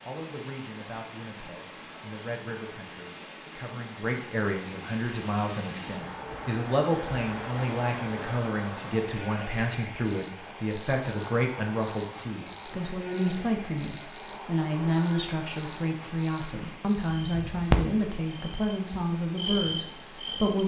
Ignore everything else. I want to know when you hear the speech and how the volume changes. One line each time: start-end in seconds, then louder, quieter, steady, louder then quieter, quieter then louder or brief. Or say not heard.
0.1-20.6 louder.